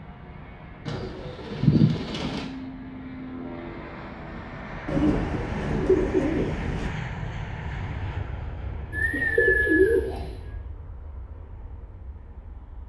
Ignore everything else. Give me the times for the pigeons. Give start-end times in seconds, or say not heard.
0.8-2.5, 4.8-6.9, 8.9-10.3.